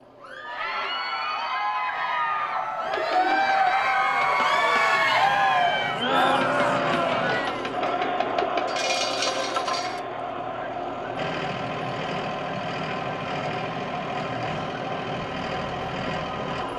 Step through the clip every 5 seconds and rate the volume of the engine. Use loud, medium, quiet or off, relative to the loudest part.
quiet, loud, loud, loud.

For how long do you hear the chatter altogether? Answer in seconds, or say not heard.
17 s.